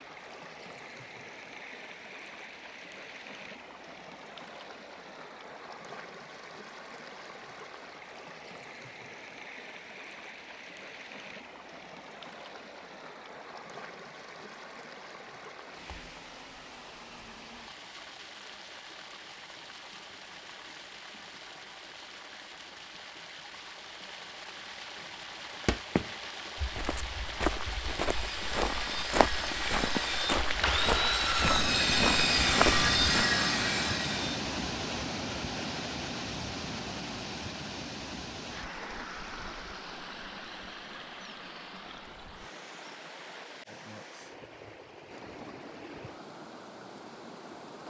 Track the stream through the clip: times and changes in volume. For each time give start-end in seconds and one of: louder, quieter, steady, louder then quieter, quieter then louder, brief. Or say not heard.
0.0-47.8 louder then quieter.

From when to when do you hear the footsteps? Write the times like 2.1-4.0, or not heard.
25.6-33.3.